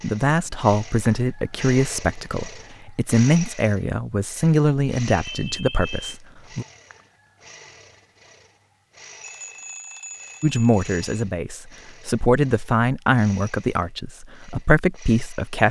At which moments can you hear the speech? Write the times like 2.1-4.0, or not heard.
0.0-6.7, 10.4-15.6.